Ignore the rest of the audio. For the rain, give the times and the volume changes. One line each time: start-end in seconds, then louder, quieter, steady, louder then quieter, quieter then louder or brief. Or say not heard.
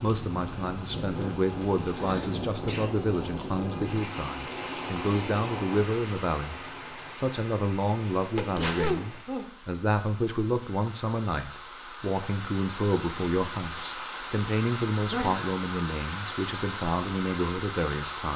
0.0-18.3 quieter then louder.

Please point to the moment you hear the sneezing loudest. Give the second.
9 s.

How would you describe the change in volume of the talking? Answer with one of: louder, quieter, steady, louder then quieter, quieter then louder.
steady.